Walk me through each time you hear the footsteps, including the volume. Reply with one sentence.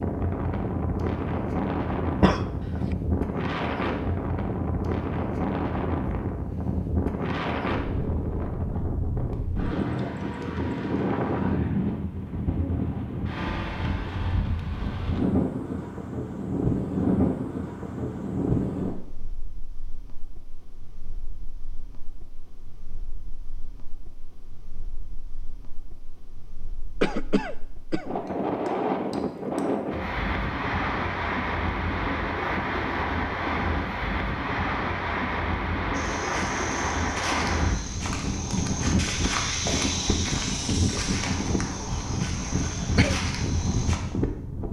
The footsteps can be heard from 35.9 to 44.0 s, getting louder then quieter.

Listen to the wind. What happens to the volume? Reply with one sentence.
The loudness of the wind goes down, then up.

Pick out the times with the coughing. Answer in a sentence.
You can hear the coughing from 2.2 to 2.9 s, from 27.0 to 28.1 s and from 42.5 to 43.1 s.